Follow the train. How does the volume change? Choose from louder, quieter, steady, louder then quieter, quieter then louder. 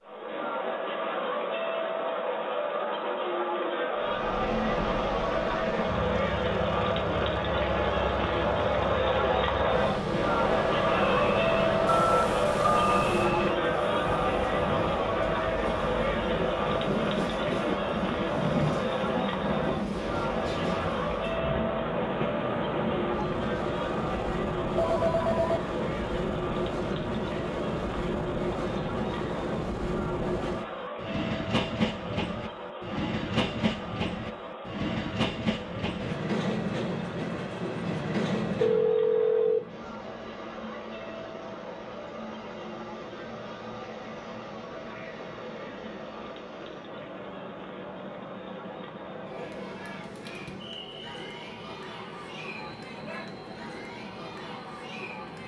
quieter.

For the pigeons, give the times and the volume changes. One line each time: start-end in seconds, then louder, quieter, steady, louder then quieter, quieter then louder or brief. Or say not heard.
not heard.